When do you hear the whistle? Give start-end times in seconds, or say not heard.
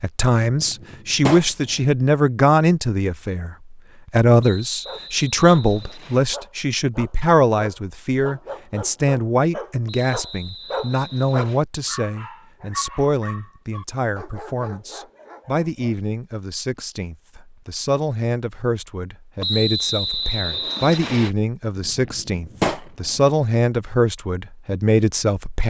4.4-6.2, 9.8-11.7, 19.4-21.3.